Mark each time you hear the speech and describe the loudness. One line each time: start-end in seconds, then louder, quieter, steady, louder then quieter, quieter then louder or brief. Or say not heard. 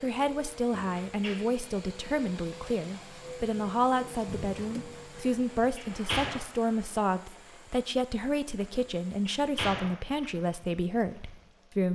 0.0-11.9 steady.